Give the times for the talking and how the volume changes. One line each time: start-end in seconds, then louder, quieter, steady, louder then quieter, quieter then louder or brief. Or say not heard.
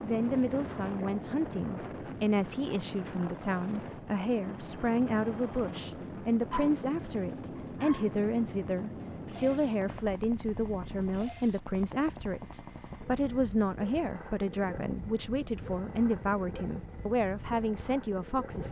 0.0-18.6 steady.